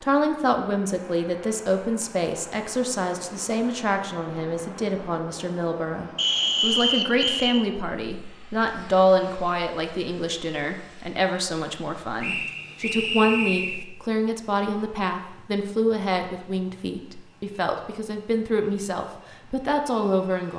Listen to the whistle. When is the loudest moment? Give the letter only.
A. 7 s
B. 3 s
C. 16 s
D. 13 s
A.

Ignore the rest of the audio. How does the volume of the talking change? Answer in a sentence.
The volume of the talking stays about the same.